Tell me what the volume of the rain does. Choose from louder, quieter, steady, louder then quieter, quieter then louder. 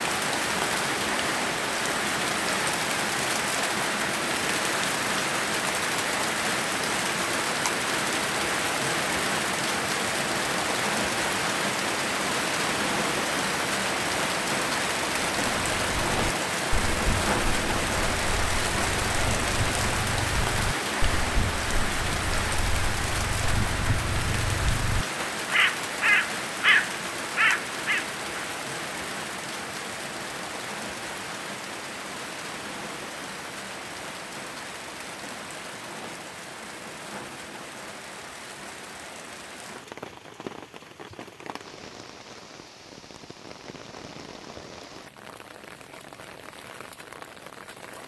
quieter.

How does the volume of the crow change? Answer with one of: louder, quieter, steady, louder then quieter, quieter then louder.
louder.